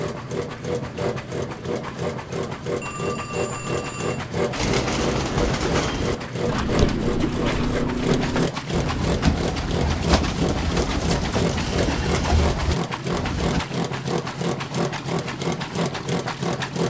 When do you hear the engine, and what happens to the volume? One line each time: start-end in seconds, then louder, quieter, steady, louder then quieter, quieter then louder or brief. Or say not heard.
0.0-16.8 steady.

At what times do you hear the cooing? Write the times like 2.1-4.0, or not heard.
4.5-13.7.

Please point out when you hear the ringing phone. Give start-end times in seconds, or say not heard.
2.8-4.2.